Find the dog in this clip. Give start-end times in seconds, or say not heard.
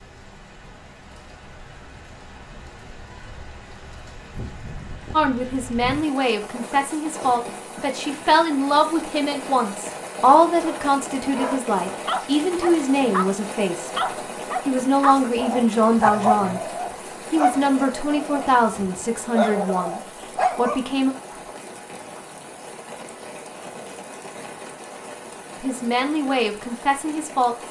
10.6-13.2, 13.9-20.9.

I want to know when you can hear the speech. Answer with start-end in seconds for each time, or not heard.
5.1-13.9, 14.7-16.6, 17.3-21.1, 25.6-27.6.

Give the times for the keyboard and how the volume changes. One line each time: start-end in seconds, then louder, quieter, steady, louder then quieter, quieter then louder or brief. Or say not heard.
not heard.